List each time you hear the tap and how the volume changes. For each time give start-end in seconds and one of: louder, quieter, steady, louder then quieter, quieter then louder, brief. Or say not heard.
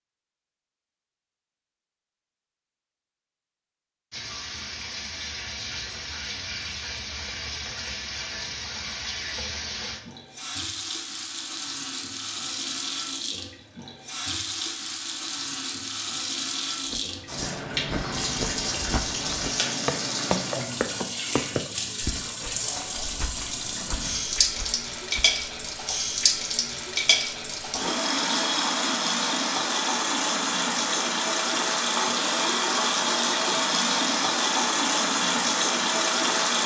4.1-36.6 louder.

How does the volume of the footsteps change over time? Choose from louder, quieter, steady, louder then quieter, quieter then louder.
louder then quieter.